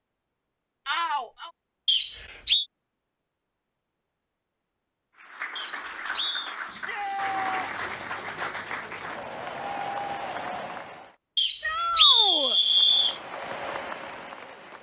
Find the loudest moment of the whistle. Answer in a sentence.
The loudest moment of the whistle is at 12 seconds.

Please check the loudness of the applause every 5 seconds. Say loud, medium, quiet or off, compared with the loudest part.
off, loud, loud.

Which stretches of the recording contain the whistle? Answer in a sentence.
You can hear the whistle from 1.9 to 2.6 s, from 5.5 to 6.5 s and from 11.3 to 13.2 s.